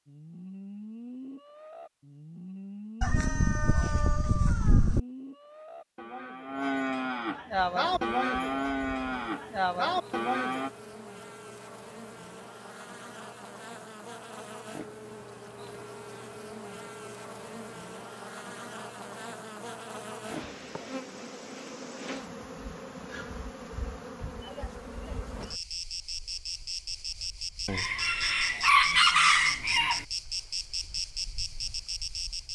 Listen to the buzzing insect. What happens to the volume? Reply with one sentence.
The loudness of the buzzing insect goes up.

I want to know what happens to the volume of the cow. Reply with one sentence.
The volume of the cow goes up.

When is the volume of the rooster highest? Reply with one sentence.
The volume of the rooster peaks at 29 seconds.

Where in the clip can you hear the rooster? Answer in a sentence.
The rooster can be heard from 3.0 to 5.0 s and from 27.6 to 30.1 s.